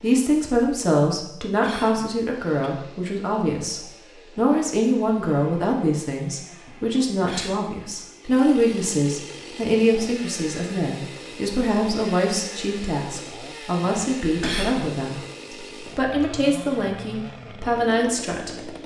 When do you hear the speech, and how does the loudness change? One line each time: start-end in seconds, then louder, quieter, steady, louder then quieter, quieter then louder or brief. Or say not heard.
0.0-18.8 steady.